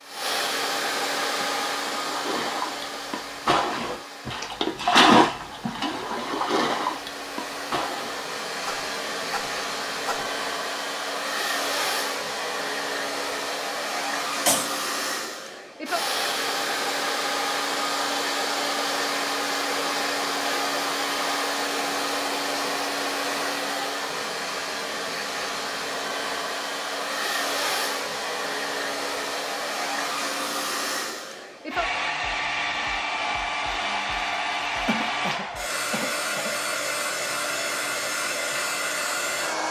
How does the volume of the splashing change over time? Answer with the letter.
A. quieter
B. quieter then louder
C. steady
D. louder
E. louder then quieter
E.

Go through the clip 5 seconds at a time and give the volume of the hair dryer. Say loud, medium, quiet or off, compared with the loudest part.
loud, medium, loud, loud, loud, loud, loud, loud.